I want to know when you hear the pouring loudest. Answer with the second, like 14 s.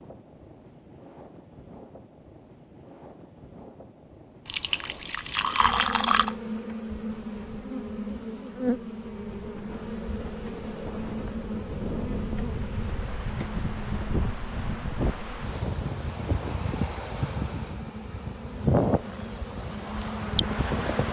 6 s.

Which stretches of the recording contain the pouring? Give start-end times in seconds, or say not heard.
4.5-6.3.